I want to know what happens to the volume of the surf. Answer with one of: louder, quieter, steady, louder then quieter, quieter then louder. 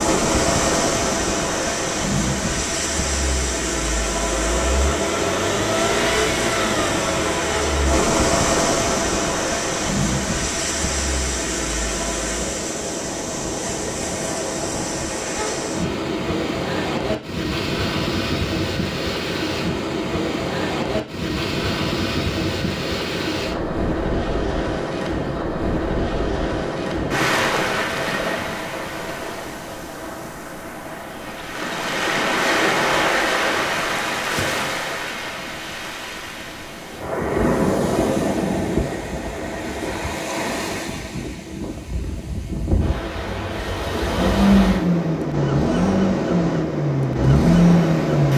steady.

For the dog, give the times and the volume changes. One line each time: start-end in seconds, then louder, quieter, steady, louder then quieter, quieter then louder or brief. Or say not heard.
not heard.